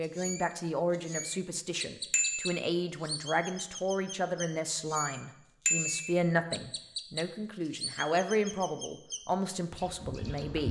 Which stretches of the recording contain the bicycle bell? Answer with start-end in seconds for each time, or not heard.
2.1-2.6, 5.7-6.2.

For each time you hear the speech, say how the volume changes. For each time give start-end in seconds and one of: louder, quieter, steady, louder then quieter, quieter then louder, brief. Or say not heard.
0.0-10.6 steady.